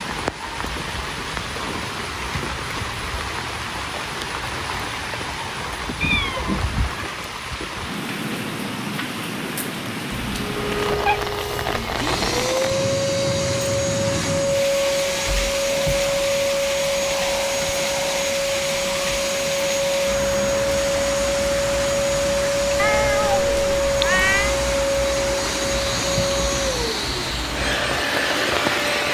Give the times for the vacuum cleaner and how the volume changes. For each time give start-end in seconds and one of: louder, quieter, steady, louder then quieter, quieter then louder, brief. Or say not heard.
10.3-29.0 steady.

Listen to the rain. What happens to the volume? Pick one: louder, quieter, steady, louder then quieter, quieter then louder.
steady.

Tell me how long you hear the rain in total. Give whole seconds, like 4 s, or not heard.
29 s.